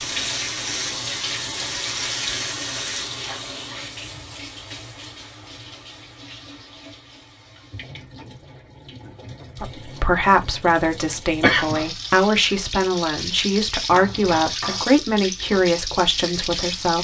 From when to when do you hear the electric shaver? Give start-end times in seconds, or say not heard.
0.0-3.0.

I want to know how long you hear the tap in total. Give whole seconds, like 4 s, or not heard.
17 s.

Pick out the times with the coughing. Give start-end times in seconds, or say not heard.
11.4-11.8.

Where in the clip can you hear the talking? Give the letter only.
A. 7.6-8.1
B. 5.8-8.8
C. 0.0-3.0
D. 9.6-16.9
D.